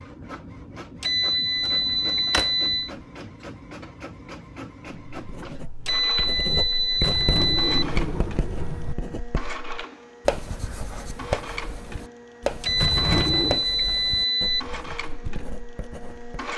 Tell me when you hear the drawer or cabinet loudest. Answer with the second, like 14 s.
13 s.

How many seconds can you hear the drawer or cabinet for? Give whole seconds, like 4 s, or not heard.
4 s.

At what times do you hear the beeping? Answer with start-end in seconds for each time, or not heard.
1.0-2.9, 5.8-7.8, 12.6-14.7.